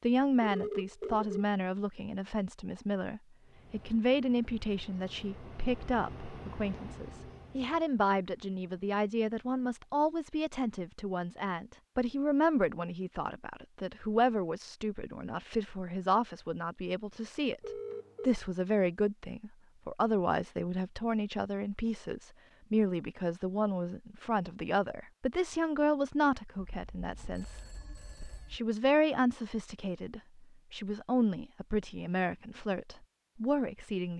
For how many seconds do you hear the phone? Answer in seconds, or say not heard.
4 s.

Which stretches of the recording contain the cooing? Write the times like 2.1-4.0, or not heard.
not heard.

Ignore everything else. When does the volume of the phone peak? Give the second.
1 s.